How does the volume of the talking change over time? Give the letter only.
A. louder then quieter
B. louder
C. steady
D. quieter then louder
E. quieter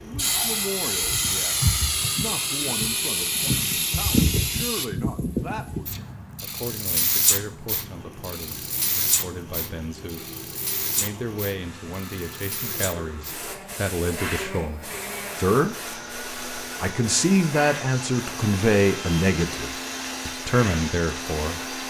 B.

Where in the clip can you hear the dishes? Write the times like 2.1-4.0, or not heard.
not heard.